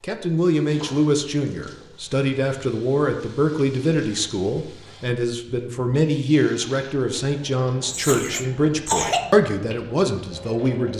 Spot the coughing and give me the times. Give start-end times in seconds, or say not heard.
7.8-9.3.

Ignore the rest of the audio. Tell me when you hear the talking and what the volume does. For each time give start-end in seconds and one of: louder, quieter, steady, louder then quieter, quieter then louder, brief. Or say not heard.
0.0-10.9 steady.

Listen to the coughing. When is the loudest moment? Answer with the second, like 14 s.
9 s.